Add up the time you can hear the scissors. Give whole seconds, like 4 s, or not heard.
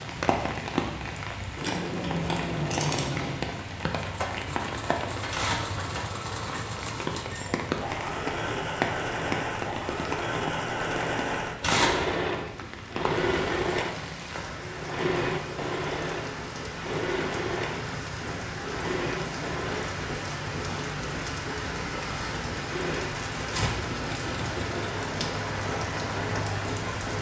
2 s.